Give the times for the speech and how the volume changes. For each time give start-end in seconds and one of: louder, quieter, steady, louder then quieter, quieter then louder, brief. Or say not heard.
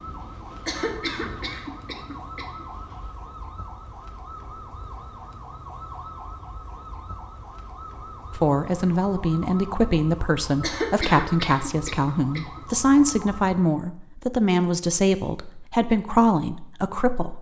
8.3-17.3 steady.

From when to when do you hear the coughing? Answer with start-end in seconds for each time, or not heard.
0.7-2.6, 10.6-12.6.